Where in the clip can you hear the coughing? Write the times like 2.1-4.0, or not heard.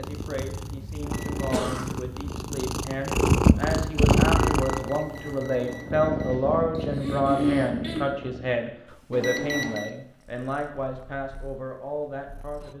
1.5-1.9, 6.8-8.1.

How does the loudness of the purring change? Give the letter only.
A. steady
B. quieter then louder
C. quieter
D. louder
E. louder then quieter
E.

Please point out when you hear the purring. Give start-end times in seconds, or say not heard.
0.0-12.7.